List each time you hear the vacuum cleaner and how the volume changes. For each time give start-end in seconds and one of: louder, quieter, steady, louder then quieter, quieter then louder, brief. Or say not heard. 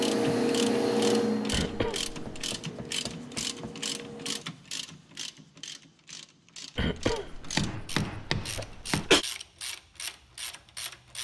0.0-4.5 quieter.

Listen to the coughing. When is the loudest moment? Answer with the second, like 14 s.
9 s.